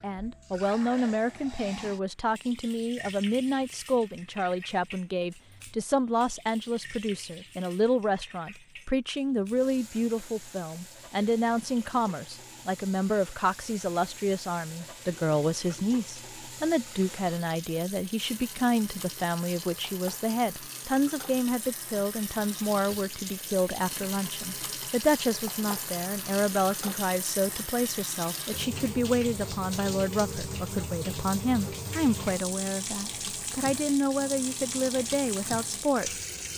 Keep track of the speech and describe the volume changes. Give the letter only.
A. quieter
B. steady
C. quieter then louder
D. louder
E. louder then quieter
B.